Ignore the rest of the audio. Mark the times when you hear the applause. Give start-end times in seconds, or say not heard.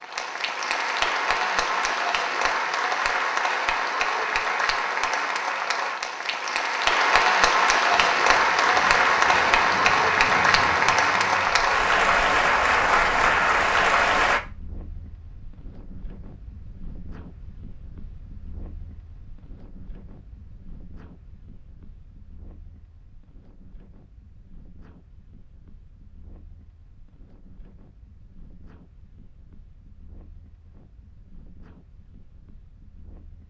0.0-14.4.